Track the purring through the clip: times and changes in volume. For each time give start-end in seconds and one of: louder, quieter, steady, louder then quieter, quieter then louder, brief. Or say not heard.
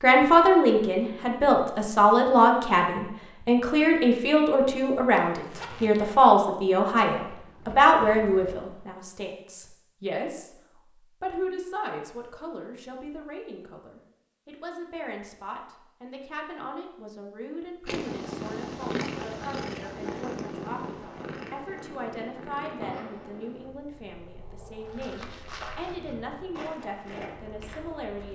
17.9-28.3 quieter.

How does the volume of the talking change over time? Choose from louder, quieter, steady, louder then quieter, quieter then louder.
quieter.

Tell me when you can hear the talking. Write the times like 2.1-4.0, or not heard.
0.0-10.6, 11.2-28.3.